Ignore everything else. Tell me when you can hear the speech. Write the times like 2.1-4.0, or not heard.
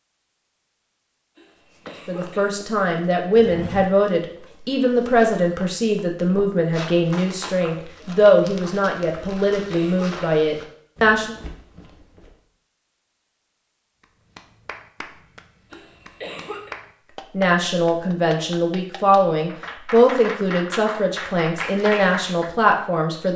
2.0-11.3, 17.3-23.3.